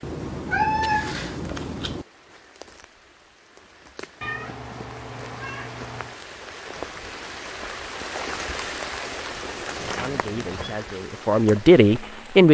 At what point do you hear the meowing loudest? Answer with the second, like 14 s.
1 s.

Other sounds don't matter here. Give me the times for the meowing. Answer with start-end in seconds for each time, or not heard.
0.0-2.0, 4.2-6.2, 9.8-10.8.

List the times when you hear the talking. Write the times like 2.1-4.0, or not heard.
9.9-12.4.